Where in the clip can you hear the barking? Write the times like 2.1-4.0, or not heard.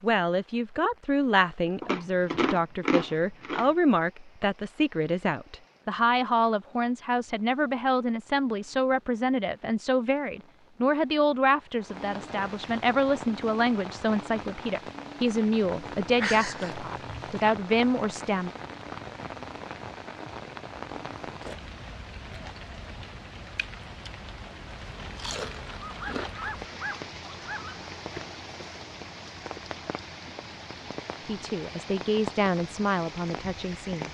25.9-27.8.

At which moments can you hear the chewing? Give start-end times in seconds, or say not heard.
1.8-3.7, 16.1-17.6, 25.1-26.8.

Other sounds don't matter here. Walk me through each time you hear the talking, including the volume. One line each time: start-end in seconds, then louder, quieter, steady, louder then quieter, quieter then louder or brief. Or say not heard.
0.0-18.5 steady
31.2-34.0 brief.